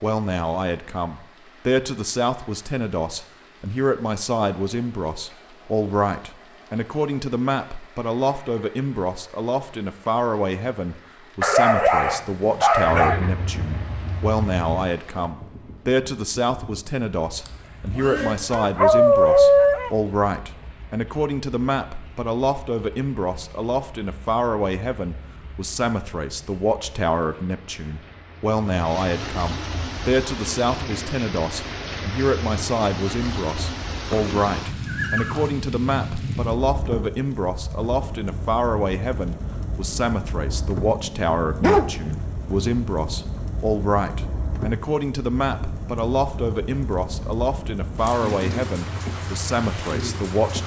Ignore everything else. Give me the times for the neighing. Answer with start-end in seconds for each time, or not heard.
12.8-14.8, 17.4-18.4, 34.0-35.5.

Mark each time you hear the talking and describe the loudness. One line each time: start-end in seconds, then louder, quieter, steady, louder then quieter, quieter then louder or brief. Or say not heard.
0.0-50.6 steady.